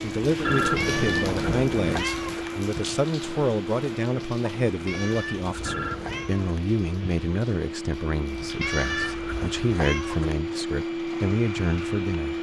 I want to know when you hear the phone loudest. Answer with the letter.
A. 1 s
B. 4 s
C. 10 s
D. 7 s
A.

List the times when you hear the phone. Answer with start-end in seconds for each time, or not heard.
0.4-2.0, 5.7-6.3, 8.8-9.2.